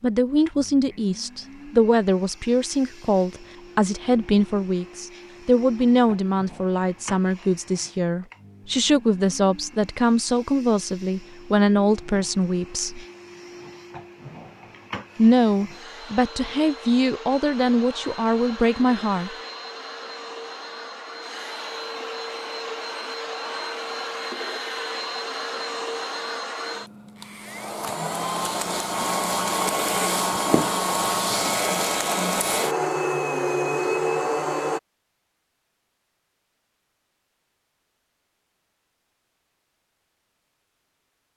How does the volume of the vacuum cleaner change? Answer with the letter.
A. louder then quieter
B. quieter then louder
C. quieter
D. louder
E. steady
D.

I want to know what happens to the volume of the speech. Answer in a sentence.
The loudness of the speech stays about the same.